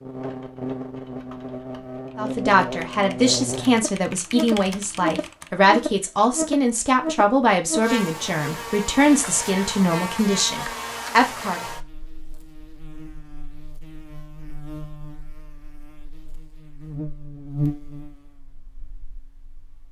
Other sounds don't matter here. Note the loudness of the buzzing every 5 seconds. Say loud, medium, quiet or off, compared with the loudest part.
loud, loud, medium, medium.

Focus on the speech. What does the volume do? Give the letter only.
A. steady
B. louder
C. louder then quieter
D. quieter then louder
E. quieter
A.